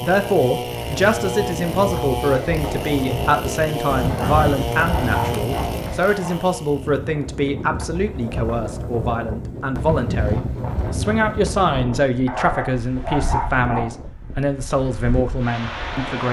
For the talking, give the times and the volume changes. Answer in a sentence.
The talking can be heard from 0.0 to 16.2 s, at a steady volume.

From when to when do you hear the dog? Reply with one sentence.
The dog can be heard from 4.1 to 6.5 s and from 12.2 to 13.9 s.